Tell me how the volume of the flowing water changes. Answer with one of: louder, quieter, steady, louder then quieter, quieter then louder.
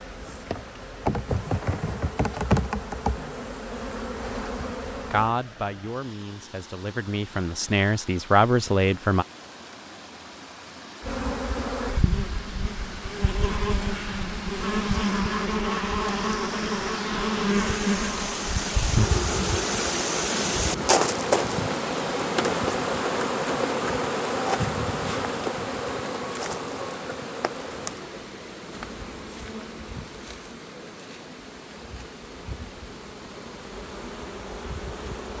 louder then quieter.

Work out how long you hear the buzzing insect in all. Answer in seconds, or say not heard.
30 s.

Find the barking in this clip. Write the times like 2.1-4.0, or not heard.
not heard.